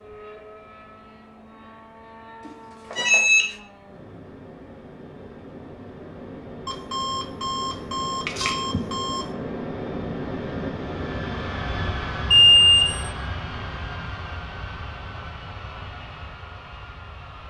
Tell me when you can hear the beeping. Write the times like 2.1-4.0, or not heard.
2.9-3.5, 6.7-9.2, 12.3-13.1.